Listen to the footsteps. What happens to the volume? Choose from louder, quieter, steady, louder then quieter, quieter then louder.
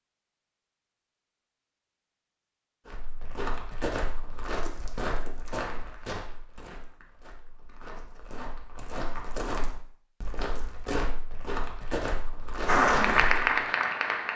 quieter then louder.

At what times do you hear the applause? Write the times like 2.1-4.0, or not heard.
12.7-14.3.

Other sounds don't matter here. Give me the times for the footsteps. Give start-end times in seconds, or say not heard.
2.9-13.4.